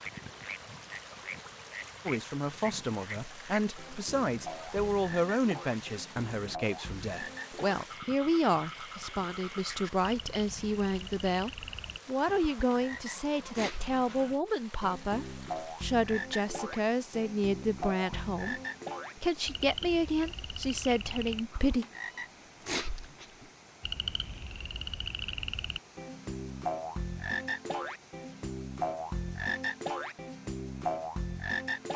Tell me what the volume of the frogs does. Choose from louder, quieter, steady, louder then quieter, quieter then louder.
louder.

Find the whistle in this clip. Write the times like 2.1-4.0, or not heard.
not heard.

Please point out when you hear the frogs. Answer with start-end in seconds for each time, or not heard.
0.0-31.9.